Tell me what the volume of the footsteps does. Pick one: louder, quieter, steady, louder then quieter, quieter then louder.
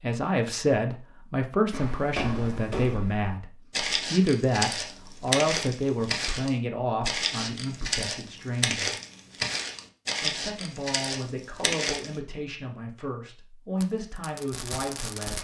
steady.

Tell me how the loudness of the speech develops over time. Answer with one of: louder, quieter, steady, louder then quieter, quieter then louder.
quieter.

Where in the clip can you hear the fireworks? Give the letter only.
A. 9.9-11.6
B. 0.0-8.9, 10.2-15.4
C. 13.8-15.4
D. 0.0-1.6
C.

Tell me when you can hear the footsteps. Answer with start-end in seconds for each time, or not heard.
1.7-12.2.